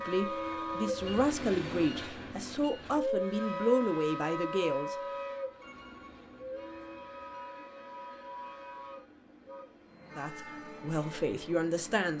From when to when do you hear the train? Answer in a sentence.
You can hear the train from 0.0 to 12.1 s.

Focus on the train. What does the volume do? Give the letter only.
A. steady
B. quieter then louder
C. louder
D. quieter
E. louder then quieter
D.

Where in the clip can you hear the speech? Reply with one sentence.
You can hear the speech from 0.0 to 5.0 s and from 10.2 to 12.1 s.